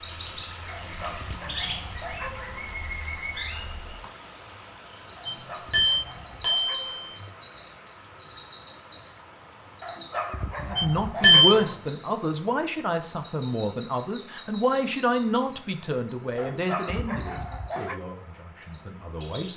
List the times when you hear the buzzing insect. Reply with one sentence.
You can't hear the buzzing insect here.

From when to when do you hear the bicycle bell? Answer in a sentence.
The bicycle bell can be heard from 5.2 to 7.0 s and from 10.8 to 11.6 s.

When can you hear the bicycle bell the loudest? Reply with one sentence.
The volume of the bicycle bell peaks at 11 seconds.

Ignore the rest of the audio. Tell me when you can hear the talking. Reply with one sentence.
The talking can be heard from 10.7 to 19.5 s.